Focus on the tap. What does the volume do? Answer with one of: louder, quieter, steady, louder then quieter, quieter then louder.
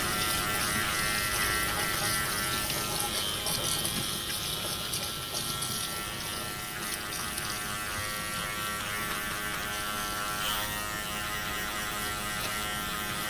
quieter.